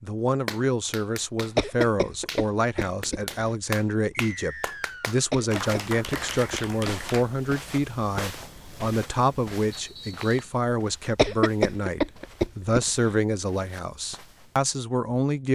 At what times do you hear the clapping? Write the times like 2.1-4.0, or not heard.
0.5-7.2.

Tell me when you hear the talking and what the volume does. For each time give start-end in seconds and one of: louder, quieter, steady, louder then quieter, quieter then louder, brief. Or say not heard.
0.0-15.5 steady.